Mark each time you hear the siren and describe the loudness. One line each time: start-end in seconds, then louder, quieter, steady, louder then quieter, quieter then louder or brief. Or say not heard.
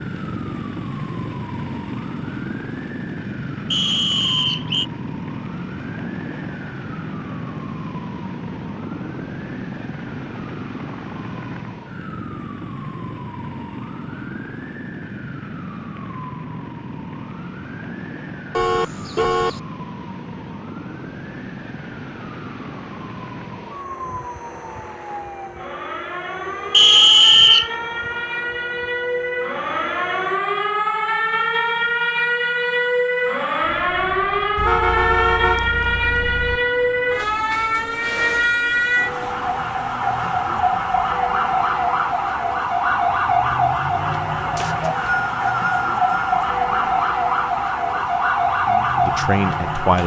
0.0-50.0 louder.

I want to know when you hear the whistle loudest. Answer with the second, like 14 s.
27 s.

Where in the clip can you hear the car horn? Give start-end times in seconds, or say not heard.
18.5-19.6, 34.5-36.6.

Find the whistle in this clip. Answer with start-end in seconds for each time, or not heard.
3.7-4.8, 26.7-27.7, 44.5-46.5.